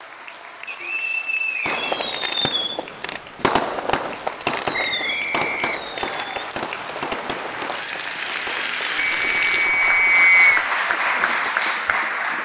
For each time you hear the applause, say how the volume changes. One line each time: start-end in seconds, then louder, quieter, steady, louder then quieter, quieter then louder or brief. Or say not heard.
0.0-12.3 louder.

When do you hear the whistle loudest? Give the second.
10 s.